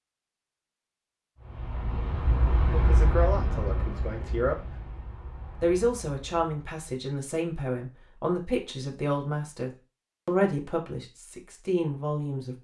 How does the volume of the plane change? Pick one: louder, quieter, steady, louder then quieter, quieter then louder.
quieter.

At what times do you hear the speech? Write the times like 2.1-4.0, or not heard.
2.7-4.7, 5.6-12.5.